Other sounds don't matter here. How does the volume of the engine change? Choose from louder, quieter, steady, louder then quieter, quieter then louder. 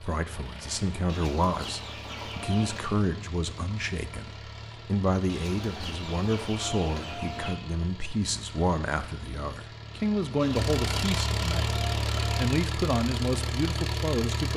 louder.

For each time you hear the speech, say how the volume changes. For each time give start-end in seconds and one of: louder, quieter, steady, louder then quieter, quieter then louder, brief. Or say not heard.
0.0-11.7 steady
12.3-14.5 brief.